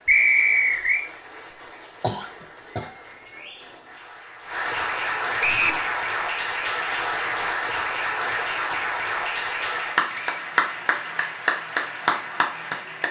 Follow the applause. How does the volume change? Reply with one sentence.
The loudness of the applause goes up.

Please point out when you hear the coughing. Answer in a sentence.
You can hear the coughing from 2.0 to 3.0 s.